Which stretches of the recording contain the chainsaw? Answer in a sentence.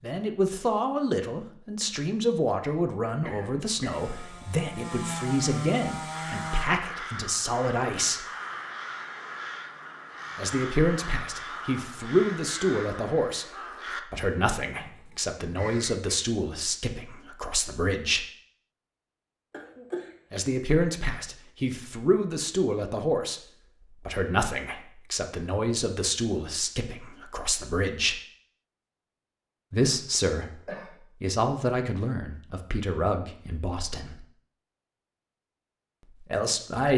The chainsaw can be heard from 3.9 to 6.7 s.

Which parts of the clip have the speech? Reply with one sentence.
You can hear the speech from 0.0 to 8.2 s, from 10.3 to 18.2 s, from 20.3 to 28.1 s, from 29.7 to 30.6 s, from 31.2 to 34.2 s and from 36.1 to 36.9 s.